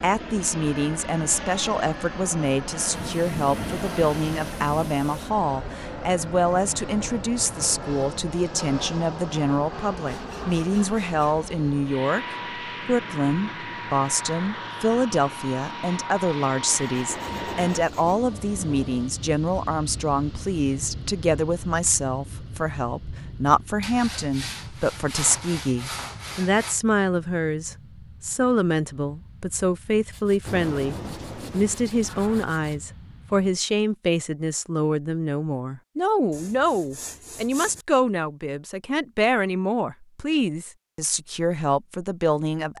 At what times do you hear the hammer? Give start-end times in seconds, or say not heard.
not heard.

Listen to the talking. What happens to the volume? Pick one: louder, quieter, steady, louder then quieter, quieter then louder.
steady.